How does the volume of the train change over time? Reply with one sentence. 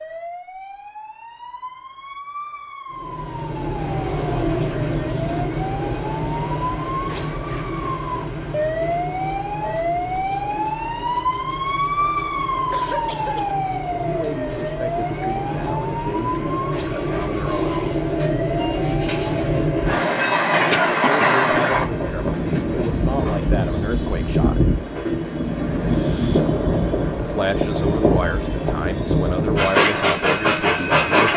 The loudness of the train goes down, then up.